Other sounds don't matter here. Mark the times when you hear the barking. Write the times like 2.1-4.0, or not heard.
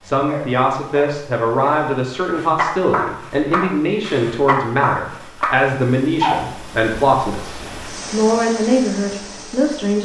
0.0-6.5.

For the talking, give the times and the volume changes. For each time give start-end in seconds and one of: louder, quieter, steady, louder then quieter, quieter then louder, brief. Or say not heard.
0.0-10.0 steady.